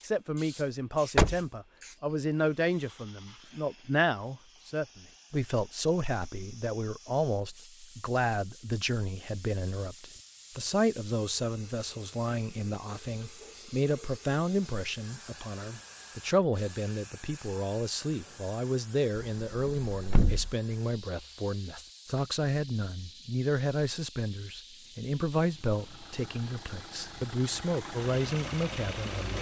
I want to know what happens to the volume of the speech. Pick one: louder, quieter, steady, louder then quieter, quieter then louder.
steady.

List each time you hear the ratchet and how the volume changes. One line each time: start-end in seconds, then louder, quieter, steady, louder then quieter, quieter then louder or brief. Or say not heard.
not heard.